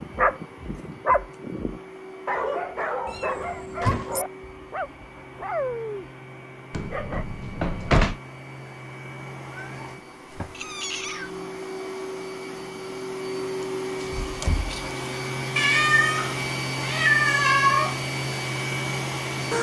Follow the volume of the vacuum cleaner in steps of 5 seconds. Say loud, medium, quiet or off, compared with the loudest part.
quiet, quiet, medium, loud.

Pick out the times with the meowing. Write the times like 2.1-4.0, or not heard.
3.0-4.2, 9.5-11.3, 15.6-17.9.